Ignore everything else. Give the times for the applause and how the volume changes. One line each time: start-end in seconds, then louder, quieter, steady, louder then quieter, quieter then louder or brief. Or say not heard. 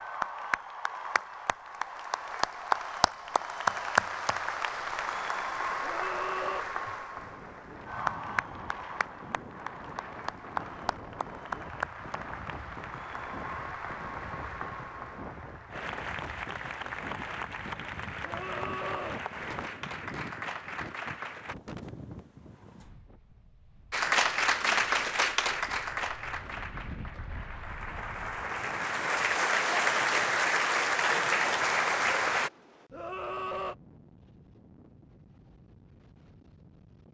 0.0-21.6 quieter
23.9-32.5 quieter then louder.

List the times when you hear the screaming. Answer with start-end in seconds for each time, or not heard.
5.8-6.7, 18.2-19.2, 32.9-33.8.